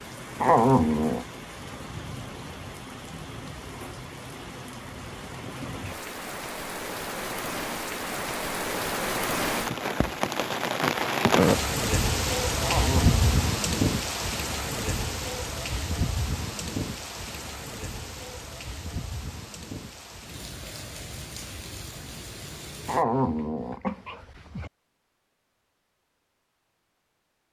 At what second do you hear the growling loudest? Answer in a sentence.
The loudest moment of the growling is at 1 second.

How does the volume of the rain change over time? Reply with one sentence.
The volume of the rain goes up, then down.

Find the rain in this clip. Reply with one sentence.
The rain can be heard from 0.0 to 23.1 s.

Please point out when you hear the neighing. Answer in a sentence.
The neighing can't be heard in this clip.